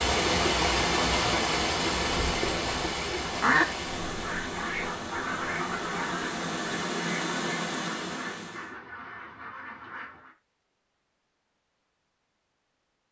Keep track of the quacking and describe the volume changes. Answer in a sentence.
The volume of the quacking goes down.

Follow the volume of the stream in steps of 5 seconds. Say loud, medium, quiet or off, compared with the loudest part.
loud, medium, off.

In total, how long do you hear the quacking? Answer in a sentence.
The quacking can be heard for 8 seconds in total.